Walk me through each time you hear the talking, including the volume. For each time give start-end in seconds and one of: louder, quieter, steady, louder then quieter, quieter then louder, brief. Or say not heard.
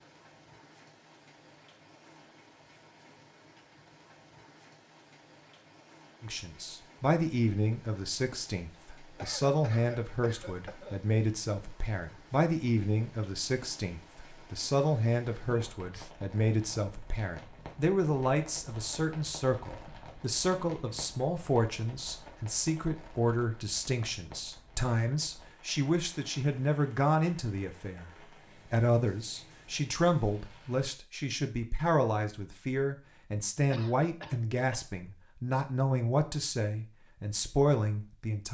6.2-28.1 steady
28.7-38.4 steady.